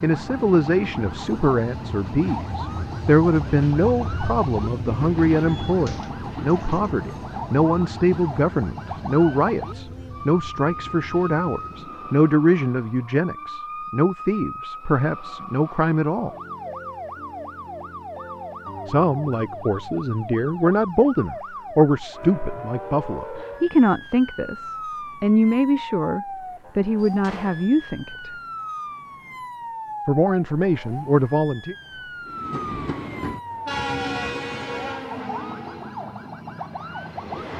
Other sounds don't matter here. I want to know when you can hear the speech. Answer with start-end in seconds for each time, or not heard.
0.0-16.3, 18.9-28.3, 30.1-31.8.